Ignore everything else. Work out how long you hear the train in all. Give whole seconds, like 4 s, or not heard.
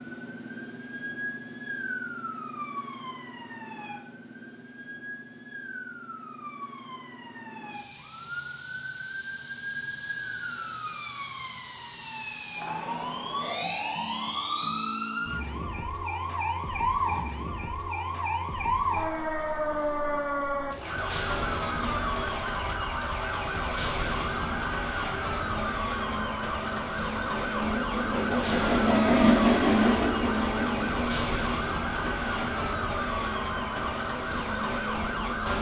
10 s.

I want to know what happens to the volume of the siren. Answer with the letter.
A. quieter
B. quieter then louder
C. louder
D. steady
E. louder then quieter
C.